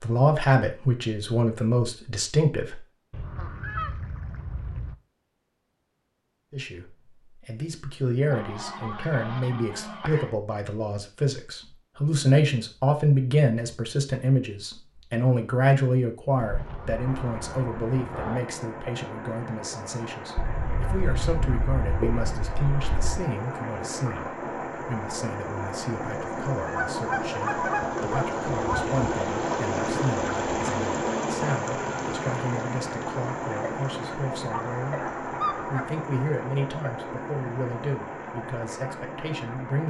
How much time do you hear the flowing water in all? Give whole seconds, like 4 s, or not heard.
23 s.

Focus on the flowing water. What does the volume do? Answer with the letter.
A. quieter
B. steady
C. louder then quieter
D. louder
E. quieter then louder
C.